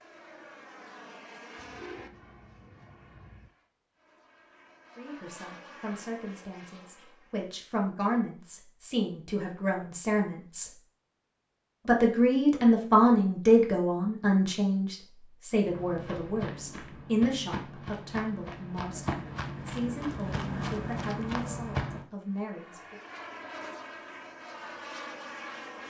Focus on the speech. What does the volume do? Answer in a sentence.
The volume of the speech goes up, then down.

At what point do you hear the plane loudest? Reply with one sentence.
The volume of the plane peaks at 25 seconds.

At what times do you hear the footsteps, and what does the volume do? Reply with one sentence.
The footsteps can be heard from 15.7 to 22.1 s, getting louder.